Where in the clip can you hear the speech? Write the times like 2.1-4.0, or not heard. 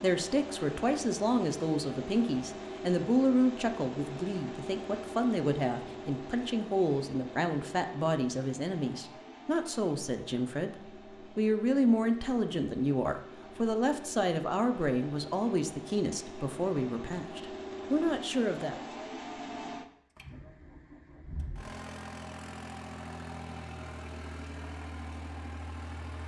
0.0-18.8.